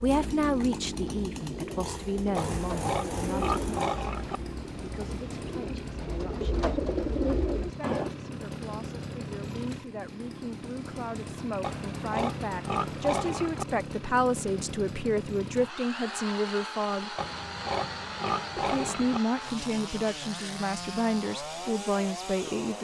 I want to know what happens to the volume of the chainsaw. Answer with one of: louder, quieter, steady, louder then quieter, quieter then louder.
steady.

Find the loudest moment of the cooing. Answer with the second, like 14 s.
7 s.